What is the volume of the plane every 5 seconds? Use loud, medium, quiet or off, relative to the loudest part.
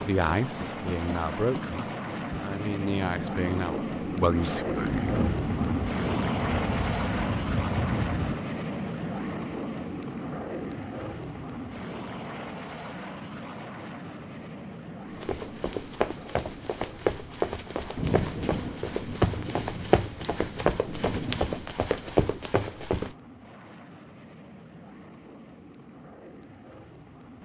loud, loud, medium, quiet, quiet, quiet.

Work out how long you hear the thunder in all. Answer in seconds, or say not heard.
7 s.